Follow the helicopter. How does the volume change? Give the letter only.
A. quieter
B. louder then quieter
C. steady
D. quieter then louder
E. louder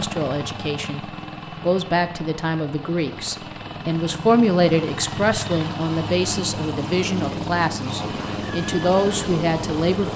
E.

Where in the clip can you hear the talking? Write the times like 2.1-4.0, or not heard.
0.0-10.1.